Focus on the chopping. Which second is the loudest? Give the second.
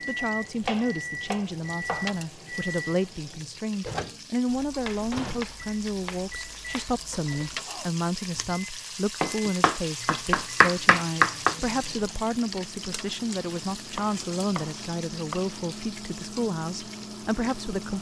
11 s.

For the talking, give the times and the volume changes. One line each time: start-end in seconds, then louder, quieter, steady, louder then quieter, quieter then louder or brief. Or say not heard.
0.1-17.9 steady.